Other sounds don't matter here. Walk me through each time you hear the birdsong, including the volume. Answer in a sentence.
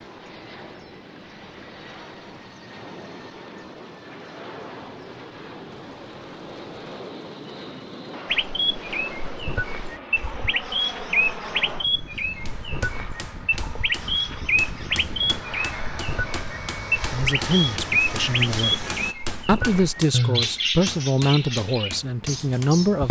The birdsong can be heard from 8.2 to 23.0 s, at a steady volume.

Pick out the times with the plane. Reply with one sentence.
You can hear the plane from 0.0 to 19.1 s.